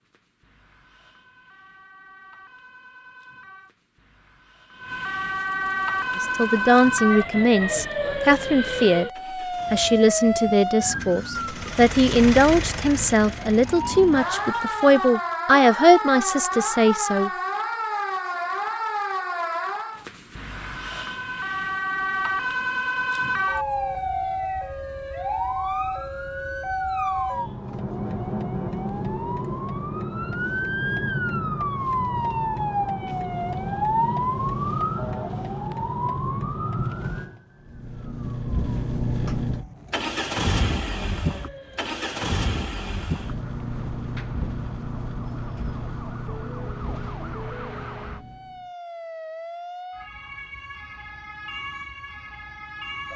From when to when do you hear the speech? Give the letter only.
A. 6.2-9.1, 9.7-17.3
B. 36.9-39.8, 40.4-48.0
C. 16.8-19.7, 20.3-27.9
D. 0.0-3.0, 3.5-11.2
A.